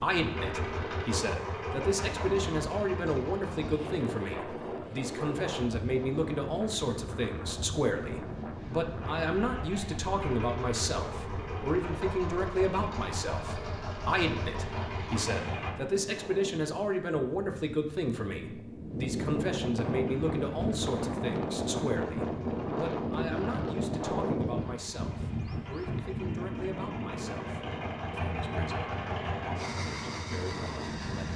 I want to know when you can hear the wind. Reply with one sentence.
The wind can be heard from 0.0 to 31.3 s.